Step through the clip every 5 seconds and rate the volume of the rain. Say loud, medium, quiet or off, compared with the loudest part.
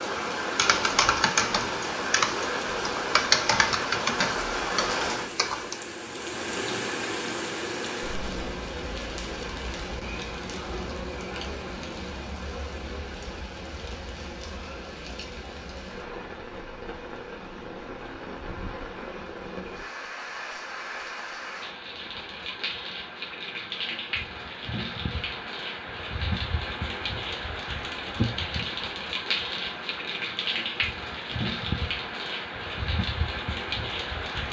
loud, loud, medium, medium, medium, loud, loud.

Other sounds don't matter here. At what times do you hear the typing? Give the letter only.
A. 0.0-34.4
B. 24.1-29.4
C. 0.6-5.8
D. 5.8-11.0
C.